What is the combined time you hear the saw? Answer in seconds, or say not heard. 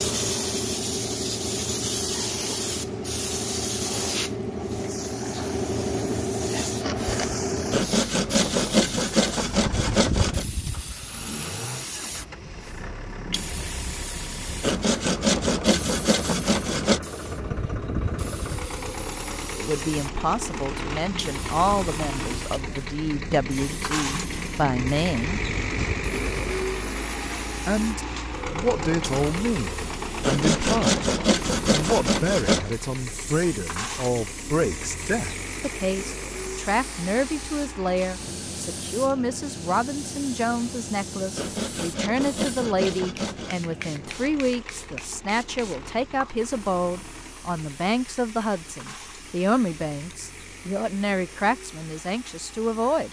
10 s.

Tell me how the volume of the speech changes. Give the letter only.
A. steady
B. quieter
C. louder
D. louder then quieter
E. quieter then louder
A.